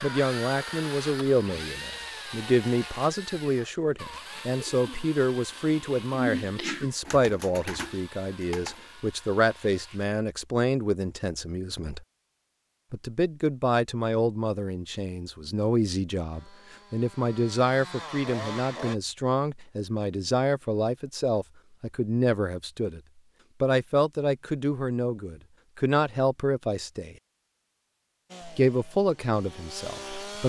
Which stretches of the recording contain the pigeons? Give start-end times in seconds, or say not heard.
3.8-8.9.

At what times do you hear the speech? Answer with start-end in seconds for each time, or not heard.
0.0-12.0, 12.9-23.0, 23.6-27.1, 28.4-30.4.